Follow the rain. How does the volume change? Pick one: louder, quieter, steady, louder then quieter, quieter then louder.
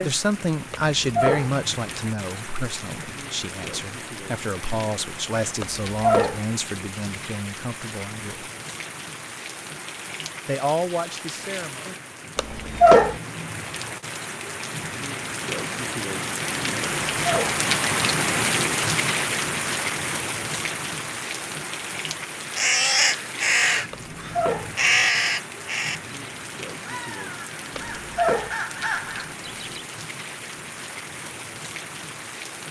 louder then quieter.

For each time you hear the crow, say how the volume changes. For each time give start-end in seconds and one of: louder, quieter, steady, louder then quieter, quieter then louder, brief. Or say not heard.
22.4-29.9 quieter then louder.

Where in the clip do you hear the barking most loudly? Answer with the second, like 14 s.
13 s.